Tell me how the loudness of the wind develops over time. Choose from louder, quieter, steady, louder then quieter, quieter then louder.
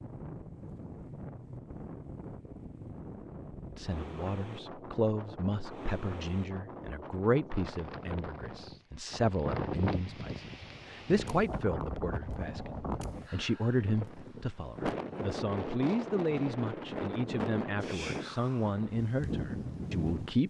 louder.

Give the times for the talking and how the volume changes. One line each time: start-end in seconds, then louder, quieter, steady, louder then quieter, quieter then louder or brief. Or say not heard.
3.8-20.4 steady.